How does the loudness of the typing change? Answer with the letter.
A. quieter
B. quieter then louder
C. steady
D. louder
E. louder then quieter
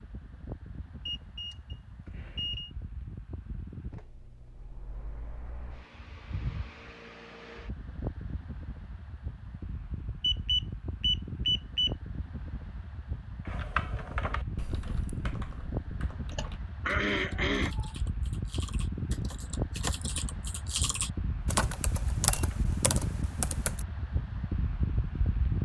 B.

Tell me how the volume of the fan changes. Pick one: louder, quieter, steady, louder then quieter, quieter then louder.
louder.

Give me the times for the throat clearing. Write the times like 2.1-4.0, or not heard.
16.3-17.9.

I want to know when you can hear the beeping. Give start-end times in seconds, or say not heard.
1.1-2.7, 10.2-11.9, 21.7-22.4.